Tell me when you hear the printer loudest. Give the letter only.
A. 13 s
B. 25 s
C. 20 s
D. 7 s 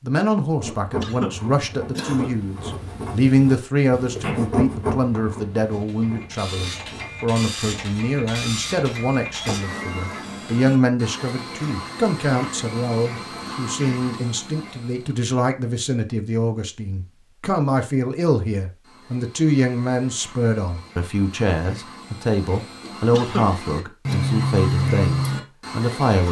B.